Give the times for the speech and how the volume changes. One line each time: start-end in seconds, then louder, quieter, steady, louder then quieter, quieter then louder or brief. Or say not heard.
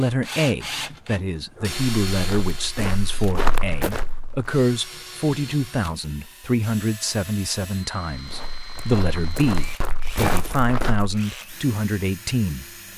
0.0-12.9 steady.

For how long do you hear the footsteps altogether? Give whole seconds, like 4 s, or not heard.
6 s.